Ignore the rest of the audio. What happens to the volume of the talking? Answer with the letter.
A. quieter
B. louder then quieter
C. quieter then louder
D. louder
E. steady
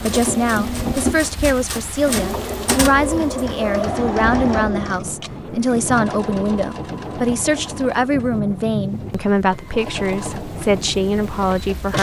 E.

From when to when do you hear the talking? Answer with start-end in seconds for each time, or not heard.
0.0-11.9.